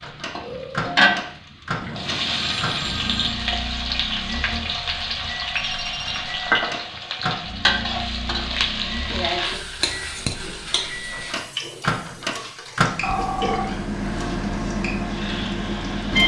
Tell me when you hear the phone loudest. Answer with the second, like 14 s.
13 s.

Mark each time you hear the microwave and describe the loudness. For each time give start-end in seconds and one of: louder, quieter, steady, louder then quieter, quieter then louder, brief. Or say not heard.
0.0-16.2 quieter then louder.